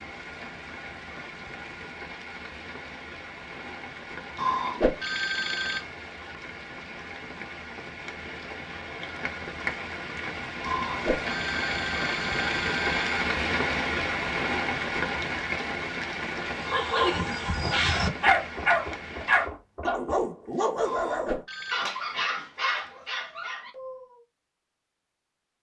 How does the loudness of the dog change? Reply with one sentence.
The loudness of the dog goes down.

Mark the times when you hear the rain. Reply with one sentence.
You can hear the rain from 0.0 to 19.5 s.